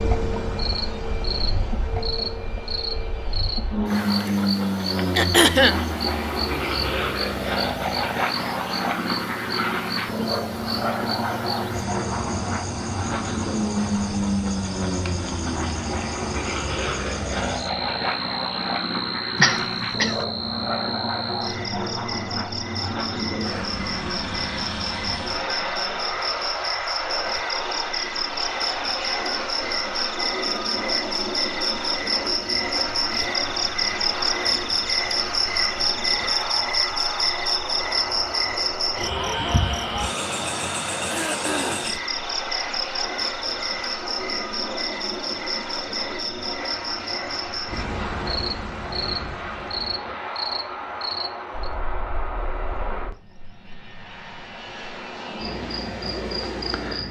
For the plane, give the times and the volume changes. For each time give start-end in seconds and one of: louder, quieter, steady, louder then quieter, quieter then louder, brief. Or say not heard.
0.0-57.0 quieter.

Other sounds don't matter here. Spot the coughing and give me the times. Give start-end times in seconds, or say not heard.
5.2-5.8, 19.4-20.2, 41.0-42.0.